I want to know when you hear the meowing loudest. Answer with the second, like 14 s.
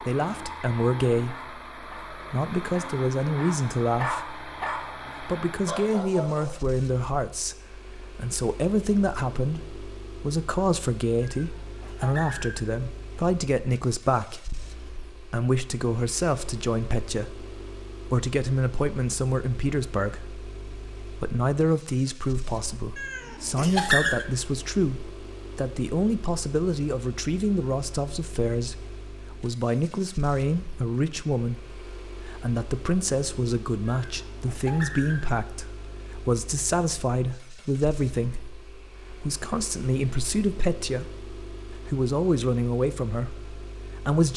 24 s.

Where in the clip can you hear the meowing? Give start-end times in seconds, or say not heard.
11.2-12.6, 22.9-24.2, 34.0-35.2.